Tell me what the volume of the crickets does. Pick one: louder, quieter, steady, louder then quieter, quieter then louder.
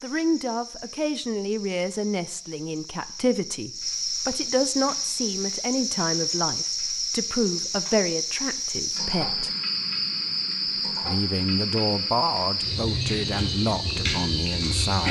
louder.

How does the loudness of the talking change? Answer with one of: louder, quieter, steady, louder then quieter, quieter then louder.
steady.